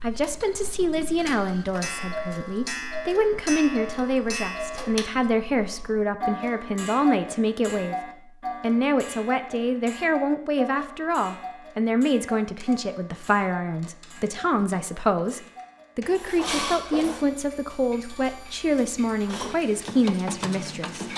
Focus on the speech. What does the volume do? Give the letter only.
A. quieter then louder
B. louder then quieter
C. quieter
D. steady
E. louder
D.